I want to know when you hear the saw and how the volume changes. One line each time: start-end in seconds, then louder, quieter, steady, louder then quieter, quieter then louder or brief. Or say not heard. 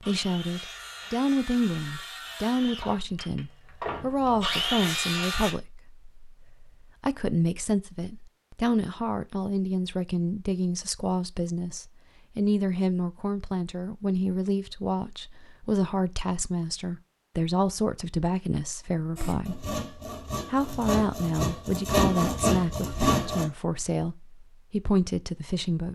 0.0-5.5 louder
19.1-23.4 louder.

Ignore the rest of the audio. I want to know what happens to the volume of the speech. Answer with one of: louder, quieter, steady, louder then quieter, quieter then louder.
steady.